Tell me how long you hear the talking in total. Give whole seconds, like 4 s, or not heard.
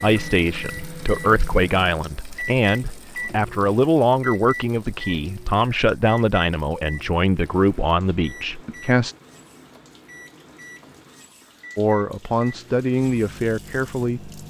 12 s.